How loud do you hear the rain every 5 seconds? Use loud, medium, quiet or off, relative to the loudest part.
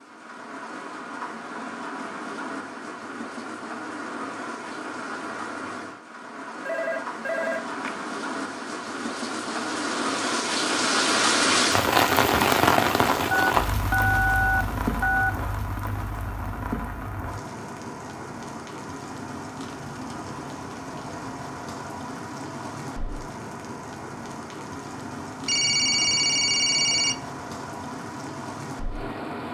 quiet, medium, loud, quiet, quiet, quiet.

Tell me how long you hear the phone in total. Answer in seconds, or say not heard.
5 s.